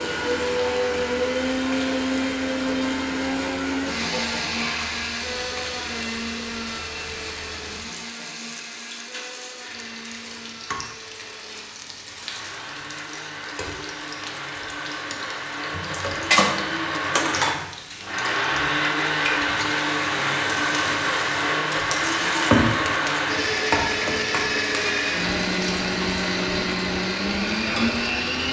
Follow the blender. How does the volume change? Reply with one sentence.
The loudness of the blender goes down, then up.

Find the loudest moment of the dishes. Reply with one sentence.
The volume of the dishes peaks at 16 seconds.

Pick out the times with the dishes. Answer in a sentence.
You can hear the dishes from 4.1 to 5.0 s and from 15.7 to 17.6 s.